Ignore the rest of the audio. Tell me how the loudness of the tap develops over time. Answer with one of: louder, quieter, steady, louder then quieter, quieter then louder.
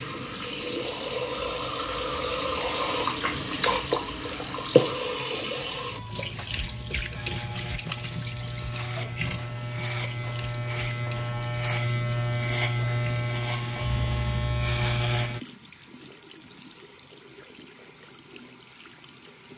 quieter.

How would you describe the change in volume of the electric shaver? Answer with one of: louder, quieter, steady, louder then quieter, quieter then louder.
louder.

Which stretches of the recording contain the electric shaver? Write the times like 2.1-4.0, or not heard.
6.5-15.4.